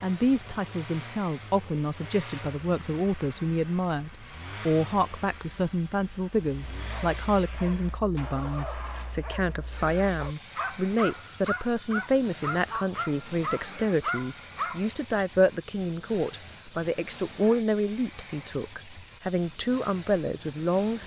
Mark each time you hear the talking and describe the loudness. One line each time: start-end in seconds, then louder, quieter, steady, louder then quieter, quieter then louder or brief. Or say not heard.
0.0-21.0 steady.